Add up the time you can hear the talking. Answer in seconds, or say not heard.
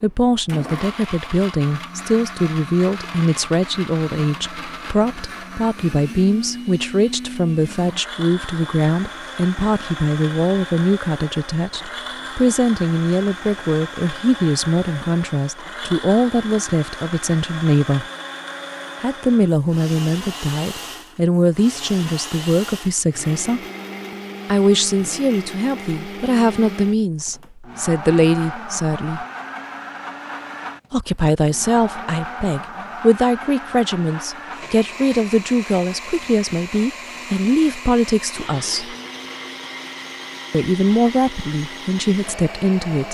38 s.